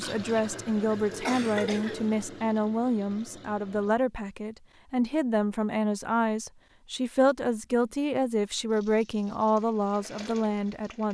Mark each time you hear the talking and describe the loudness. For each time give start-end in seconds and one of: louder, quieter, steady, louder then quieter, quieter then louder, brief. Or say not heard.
0.0-11.0 steady.